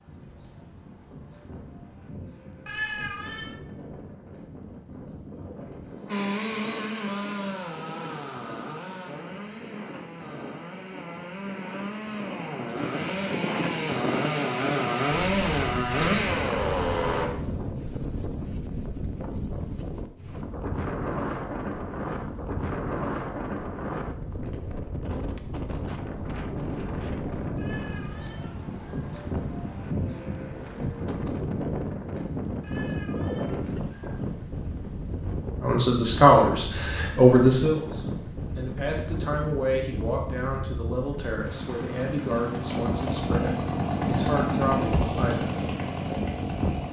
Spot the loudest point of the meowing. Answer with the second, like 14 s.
3 s.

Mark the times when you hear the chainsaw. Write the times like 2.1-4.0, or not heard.
6.0-17.3, 41.5-46.8.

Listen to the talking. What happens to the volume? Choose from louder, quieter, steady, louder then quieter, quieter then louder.
quieter.